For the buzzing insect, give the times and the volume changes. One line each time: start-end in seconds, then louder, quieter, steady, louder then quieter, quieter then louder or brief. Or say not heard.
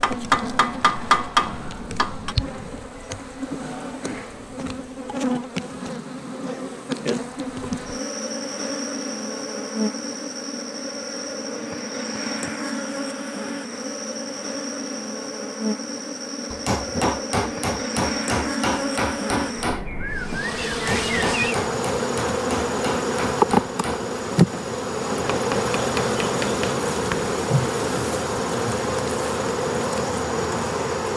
0.0-31.1 louder.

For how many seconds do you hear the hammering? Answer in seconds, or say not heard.
13 s.